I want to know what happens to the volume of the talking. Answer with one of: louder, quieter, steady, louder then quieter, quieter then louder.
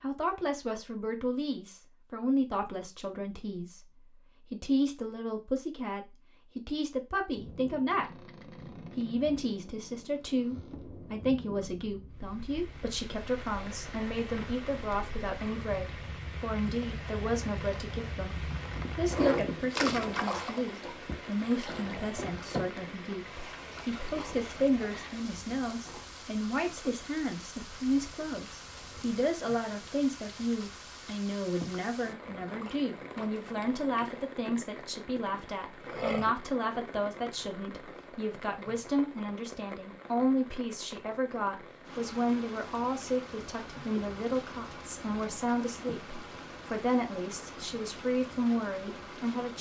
steady.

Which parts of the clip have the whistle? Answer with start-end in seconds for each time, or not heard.
not heard.